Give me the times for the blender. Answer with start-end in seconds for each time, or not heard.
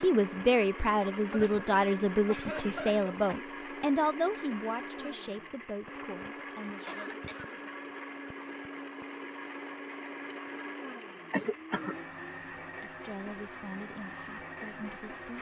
0.0-15.3.